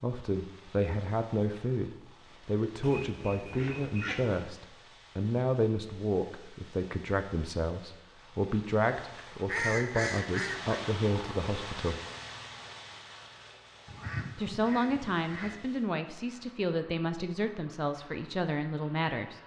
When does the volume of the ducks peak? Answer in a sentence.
The loudest moment of the ducks is at 10 seconds.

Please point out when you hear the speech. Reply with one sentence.
The speech can be heard from 0.0 to 12.0 s and from 14.3 to 19.4 s.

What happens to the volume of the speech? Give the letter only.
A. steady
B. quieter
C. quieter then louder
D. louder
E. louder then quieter
A.